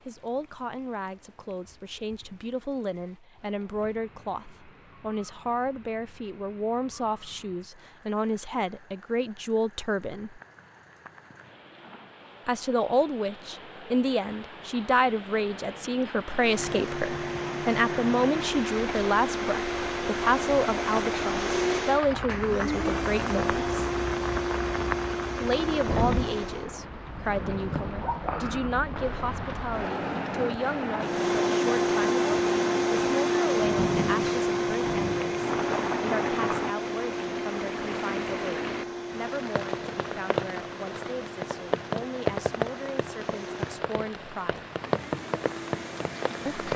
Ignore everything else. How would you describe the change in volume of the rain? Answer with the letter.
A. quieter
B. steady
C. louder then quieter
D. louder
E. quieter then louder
D.